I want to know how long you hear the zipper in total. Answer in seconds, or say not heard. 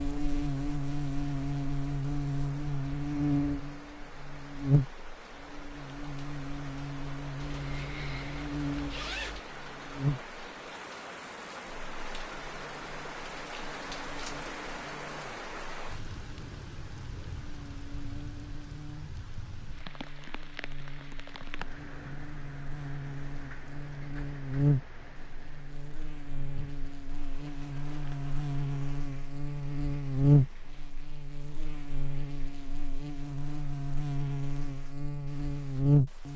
2 s.